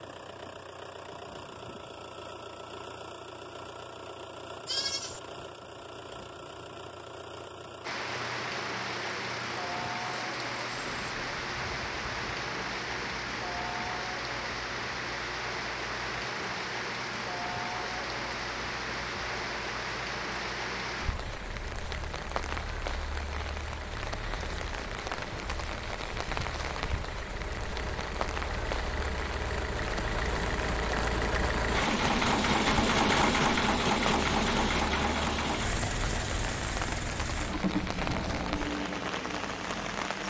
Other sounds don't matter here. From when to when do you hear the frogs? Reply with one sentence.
You can't hear the frogs here.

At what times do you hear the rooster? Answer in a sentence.
You can't hear the rooster here.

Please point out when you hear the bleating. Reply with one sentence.
The bleating can be heard from 4.7 to 5.2 s.